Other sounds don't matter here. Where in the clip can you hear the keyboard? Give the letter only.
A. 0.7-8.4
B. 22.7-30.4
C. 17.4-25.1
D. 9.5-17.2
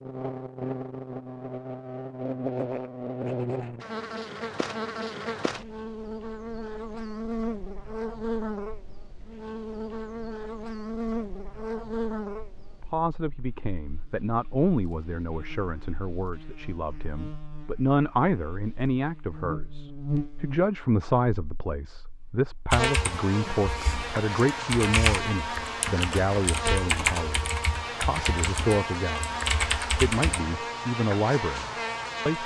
B.